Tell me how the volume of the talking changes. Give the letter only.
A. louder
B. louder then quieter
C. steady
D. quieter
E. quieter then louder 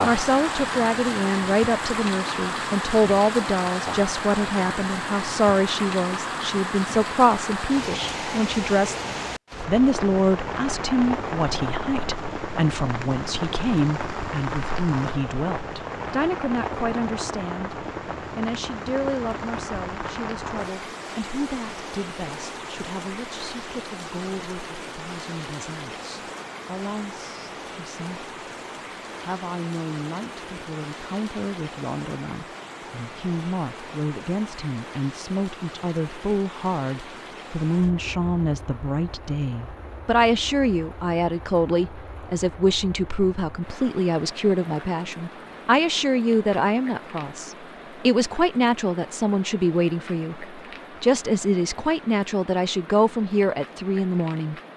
E.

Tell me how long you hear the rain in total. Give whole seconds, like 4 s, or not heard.
55 s.